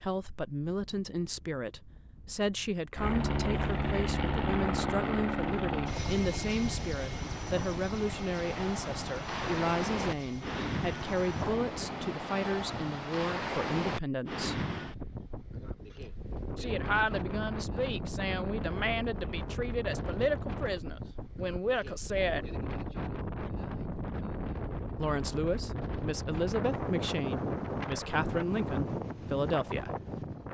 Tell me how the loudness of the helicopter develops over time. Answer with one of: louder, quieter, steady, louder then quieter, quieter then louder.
quieter.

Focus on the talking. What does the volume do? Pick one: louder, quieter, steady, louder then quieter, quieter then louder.
steady.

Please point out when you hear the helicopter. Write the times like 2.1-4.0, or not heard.
3.0-12.2.